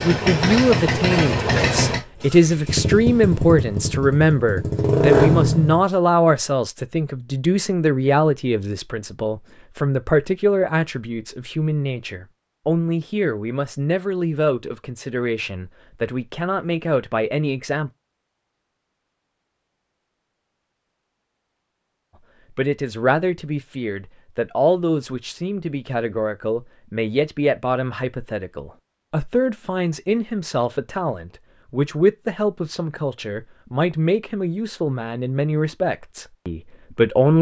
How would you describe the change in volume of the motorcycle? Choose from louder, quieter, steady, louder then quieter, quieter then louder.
quieter then louder.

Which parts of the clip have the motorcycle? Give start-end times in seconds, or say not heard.
0.0-5.8.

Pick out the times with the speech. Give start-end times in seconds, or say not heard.
0.0-17.9, 22.6-37.3.